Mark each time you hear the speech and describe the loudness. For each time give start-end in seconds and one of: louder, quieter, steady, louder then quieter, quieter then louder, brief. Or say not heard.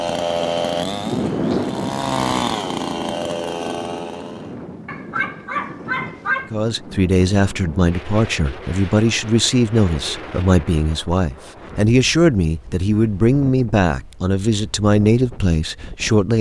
6.5-16.3 steady.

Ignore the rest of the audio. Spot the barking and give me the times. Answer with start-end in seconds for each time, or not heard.
4.8-6.5.